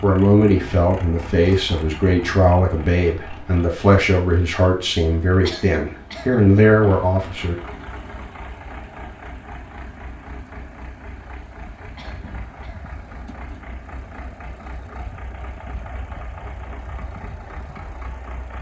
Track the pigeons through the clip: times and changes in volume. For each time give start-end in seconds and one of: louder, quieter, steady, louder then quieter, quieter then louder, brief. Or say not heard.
not heard.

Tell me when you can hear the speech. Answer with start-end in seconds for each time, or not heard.
0.0-7.5.